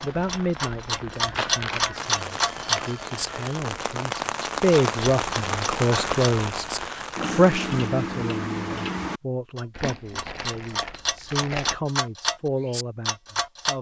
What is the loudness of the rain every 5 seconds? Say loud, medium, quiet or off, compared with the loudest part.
loud, loud, off.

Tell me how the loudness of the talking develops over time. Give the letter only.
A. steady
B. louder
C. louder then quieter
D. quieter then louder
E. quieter
C.